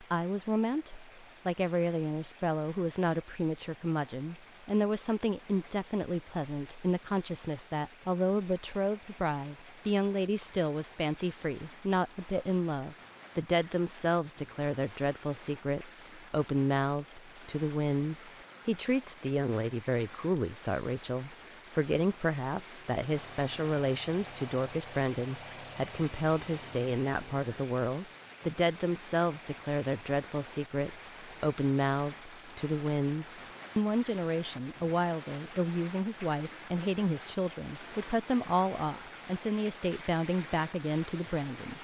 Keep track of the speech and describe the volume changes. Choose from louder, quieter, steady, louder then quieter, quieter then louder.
steady.